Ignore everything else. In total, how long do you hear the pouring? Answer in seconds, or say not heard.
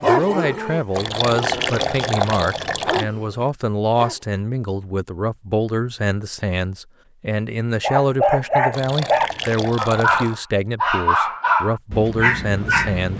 4 s.